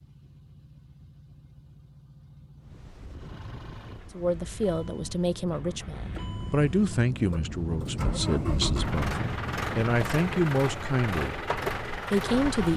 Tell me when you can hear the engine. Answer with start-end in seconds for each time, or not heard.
0.0-12.7.